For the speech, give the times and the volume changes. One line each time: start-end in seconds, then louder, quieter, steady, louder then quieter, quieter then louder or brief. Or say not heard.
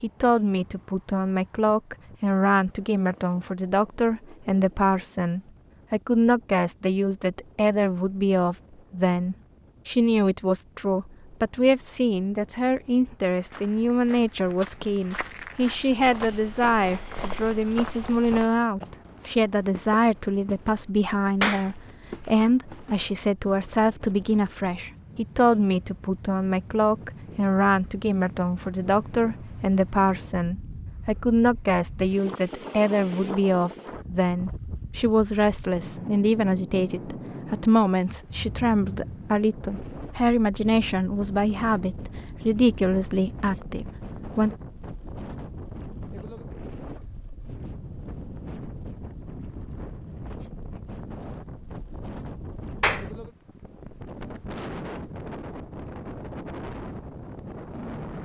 0.0-44.5 steady.